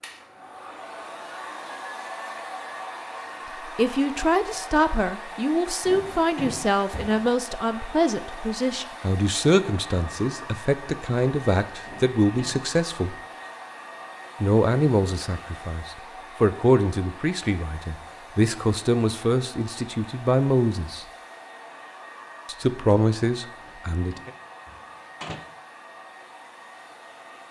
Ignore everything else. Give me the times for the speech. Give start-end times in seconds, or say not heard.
3.6-13.2, 14.4-21.1, 22.4-24.3.